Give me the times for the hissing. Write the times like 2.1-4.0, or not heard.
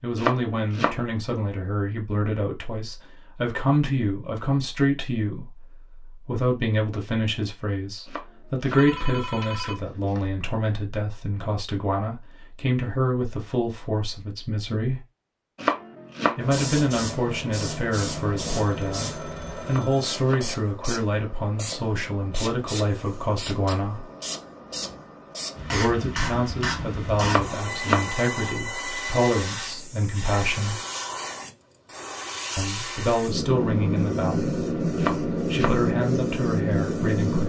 16.4-37.4.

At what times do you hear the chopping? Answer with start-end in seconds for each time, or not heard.
0.1-1.0, 8.1-8.9, 15.6-16.4, 19.6-20.5, 27.2-28.1, 35.0-35.8.